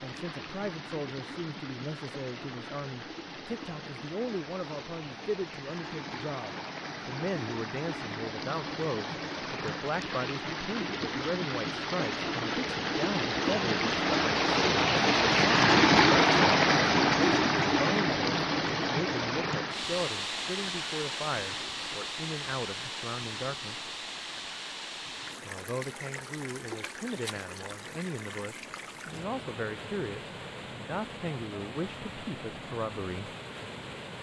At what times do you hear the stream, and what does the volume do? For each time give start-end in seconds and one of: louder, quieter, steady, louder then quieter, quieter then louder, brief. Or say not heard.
0.0-34.1 louder then quieter.